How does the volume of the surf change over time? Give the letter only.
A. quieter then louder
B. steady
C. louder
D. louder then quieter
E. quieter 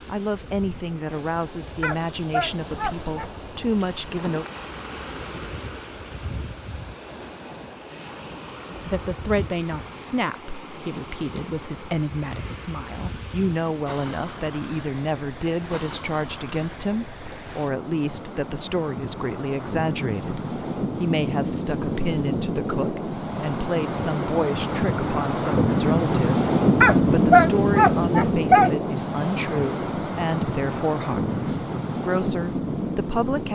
C.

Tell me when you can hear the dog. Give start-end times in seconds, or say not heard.
1.8-3.3, 26.8-28.7.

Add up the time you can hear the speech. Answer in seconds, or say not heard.
29 s.